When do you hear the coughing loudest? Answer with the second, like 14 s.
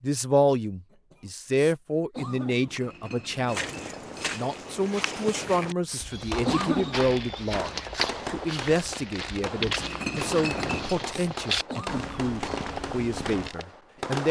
7 s.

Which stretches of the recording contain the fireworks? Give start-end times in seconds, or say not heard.
6.1-14.2.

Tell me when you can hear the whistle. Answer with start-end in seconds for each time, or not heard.
not heard.